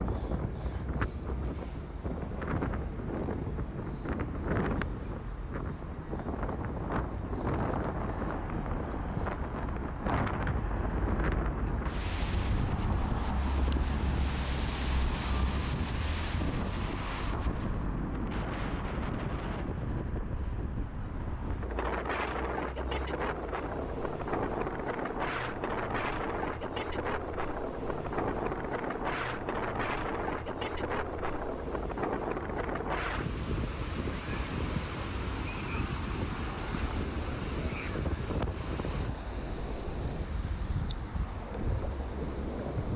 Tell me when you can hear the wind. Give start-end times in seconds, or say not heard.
0.0-42.9.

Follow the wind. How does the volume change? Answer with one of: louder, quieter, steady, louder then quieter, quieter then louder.
steady.